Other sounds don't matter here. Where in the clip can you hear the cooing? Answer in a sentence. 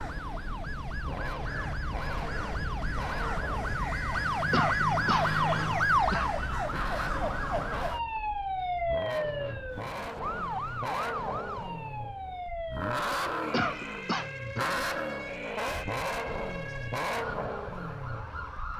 The cooing can't be heard in this clip.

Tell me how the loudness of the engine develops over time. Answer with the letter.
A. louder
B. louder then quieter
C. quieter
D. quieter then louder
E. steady
A.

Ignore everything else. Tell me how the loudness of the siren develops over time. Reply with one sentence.
The volume of the siren goes up, then down.